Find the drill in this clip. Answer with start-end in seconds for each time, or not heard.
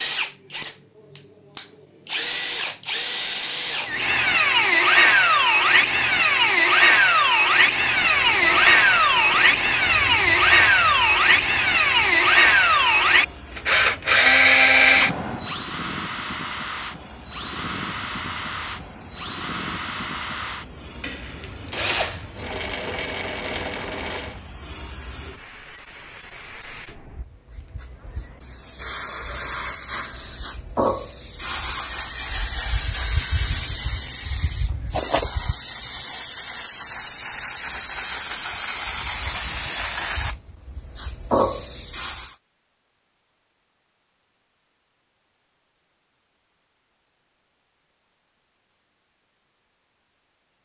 0.0-24.4.